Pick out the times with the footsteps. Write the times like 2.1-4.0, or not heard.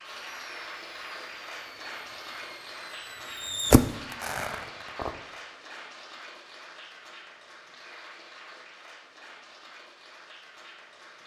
not heard.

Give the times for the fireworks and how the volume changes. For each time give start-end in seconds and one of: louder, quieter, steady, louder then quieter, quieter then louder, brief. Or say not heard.
0.1-5.2 louder then quieter.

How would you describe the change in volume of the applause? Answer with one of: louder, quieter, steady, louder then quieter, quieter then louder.
quieter.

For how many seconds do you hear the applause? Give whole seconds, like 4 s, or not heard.
11 s.